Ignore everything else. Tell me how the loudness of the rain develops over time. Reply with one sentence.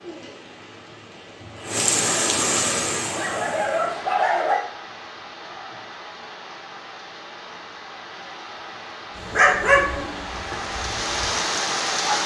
The volume of the rain goes down, then up.